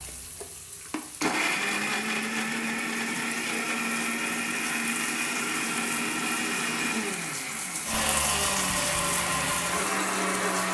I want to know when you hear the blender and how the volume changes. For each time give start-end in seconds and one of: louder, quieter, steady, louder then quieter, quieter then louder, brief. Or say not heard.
0.0-10.7 steady.